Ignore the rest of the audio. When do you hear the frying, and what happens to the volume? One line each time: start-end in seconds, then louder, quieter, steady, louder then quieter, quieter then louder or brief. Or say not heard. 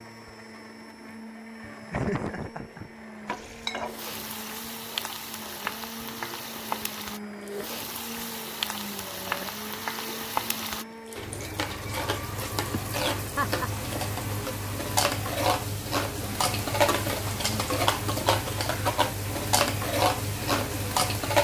3.2-21.3 louder.